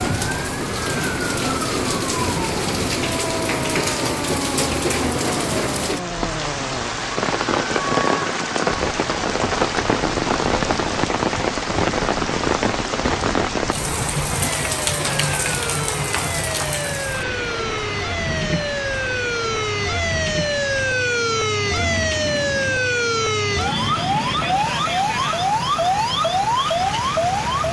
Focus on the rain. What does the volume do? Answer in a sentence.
The loudness of the rain goes down.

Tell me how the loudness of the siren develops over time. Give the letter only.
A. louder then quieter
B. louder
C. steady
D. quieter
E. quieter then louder
B.